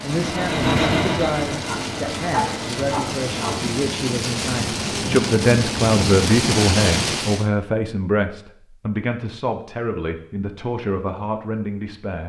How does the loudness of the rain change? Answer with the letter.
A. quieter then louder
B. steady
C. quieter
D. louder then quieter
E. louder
E.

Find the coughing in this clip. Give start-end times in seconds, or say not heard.
not heard.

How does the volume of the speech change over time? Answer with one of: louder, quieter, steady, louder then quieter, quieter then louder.
louder then quieter.